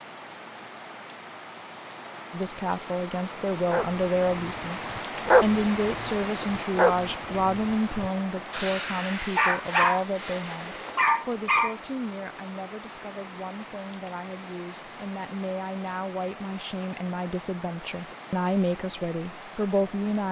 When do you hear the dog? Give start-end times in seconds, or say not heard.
3.6-11.8.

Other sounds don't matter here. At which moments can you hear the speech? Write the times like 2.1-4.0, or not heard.
2.3-20.2.